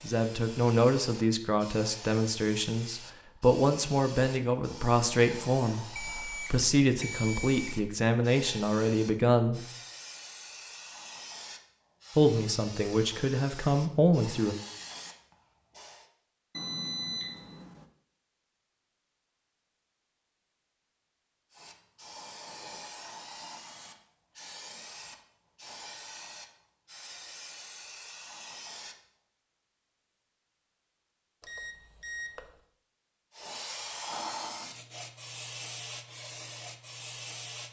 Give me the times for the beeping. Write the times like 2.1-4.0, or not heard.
6.0-7.9, 16.6-17.9, 31.4-32.5.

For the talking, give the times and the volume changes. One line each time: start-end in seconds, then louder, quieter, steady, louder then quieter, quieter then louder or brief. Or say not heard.
0.0-9.7 steady
12.2-14.6 brief.